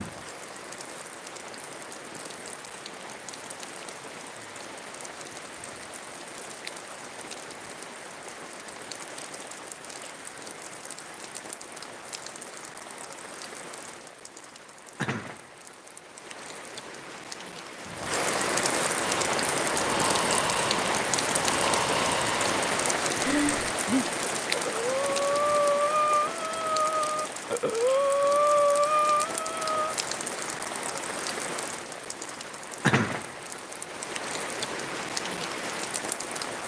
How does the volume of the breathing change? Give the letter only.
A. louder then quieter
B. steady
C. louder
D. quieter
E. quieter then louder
C.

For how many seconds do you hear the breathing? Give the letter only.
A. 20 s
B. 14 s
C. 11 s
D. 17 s
C.